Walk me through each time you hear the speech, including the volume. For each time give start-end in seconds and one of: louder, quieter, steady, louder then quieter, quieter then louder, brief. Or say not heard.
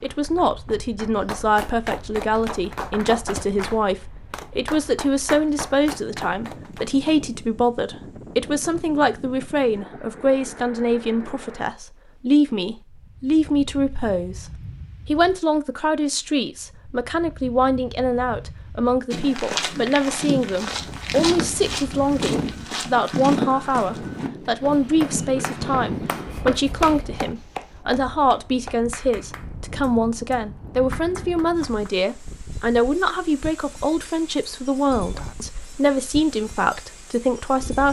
0.0-37.8 steady.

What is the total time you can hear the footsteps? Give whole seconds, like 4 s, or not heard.
8 s.